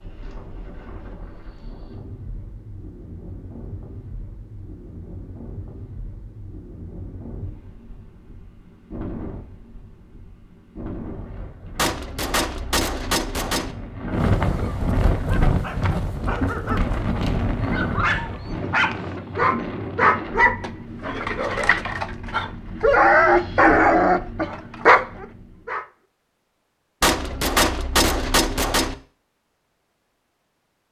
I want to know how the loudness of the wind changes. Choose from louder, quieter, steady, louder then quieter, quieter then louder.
louder then quieter.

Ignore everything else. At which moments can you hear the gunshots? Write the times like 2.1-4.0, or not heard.
11.8-13.8, 27.0-28.9.